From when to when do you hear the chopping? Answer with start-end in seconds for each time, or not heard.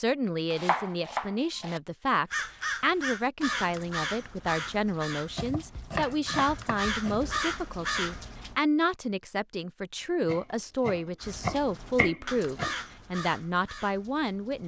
0.5-1.8, 5.3-7.3, 10.2-12.8.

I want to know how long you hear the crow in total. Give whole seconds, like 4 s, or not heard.
10 s.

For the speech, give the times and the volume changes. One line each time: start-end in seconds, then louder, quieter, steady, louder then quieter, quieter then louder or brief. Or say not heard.
0.0-14.6 steady.